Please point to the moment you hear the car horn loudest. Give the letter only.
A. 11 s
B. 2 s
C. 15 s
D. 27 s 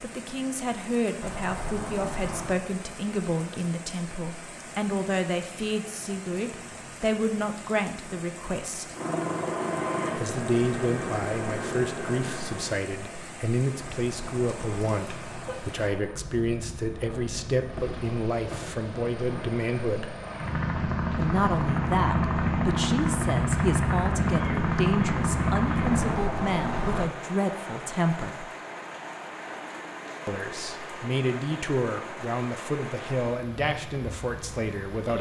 D.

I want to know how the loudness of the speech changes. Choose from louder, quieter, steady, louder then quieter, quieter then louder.
steady.